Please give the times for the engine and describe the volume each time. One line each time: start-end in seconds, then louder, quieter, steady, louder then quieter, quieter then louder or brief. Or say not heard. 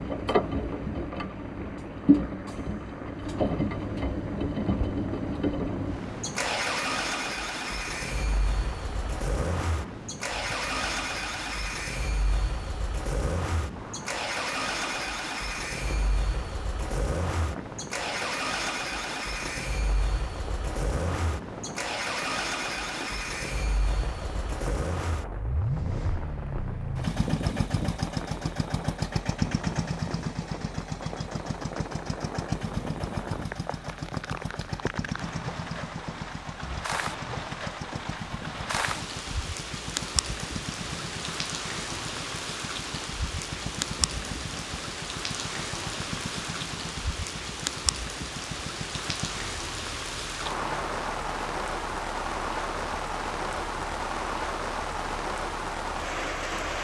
0.0-56.5 quieter.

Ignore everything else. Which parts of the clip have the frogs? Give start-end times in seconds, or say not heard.
not heard.